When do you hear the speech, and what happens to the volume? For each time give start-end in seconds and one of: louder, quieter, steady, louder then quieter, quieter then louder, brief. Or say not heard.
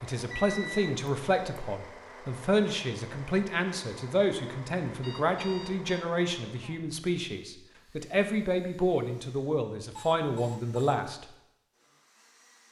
0.0-11.2 steady.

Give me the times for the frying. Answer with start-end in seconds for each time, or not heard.
not heard.